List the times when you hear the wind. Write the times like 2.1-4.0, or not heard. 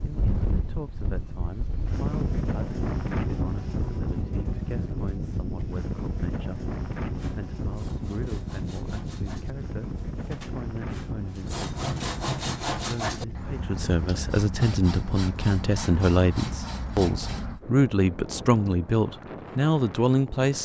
0.0-20.6.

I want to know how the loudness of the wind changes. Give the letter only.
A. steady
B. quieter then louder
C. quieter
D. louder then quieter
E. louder
C.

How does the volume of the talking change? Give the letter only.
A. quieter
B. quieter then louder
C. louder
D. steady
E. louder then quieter
C.